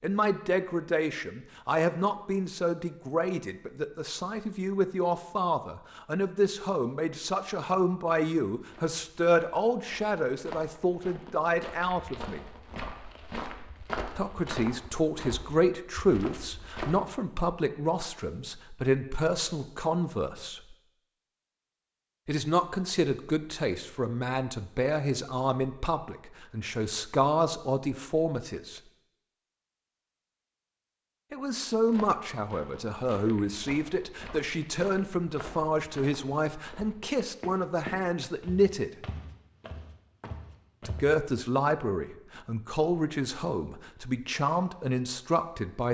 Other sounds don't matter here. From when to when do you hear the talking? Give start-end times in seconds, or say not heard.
0.0-12.4, 14.2-20.8, 22.2-28.8, 31.3-38.9, 40.9-45.8.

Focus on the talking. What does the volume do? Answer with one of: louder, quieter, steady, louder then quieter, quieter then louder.
steady.